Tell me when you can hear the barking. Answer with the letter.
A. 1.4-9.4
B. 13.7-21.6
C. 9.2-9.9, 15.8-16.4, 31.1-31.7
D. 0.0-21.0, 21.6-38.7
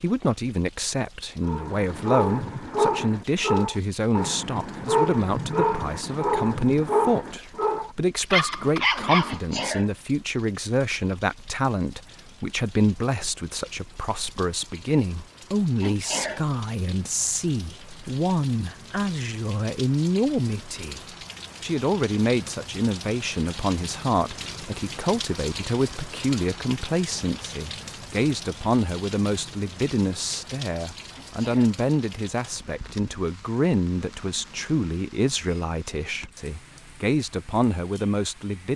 A.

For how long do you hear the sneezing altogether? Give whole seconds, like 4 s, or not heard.
2 s.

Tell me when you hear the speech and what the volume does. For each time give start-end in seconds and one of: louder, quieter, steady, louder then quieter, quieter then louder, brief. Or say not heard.
0.0-21.0 steady
21.6-38.7 steady.